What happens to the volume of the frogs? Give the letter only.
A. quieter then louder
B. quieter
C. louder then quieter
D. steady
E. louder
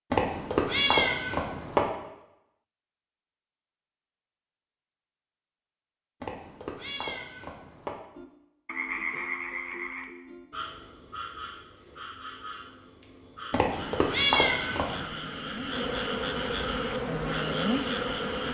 A.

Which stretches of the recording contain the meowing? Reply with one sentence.
You can hear the meowing from 0.1 to 1.9 s, from 6.2 to 8.0 s and from 13.5 to 15.0 s.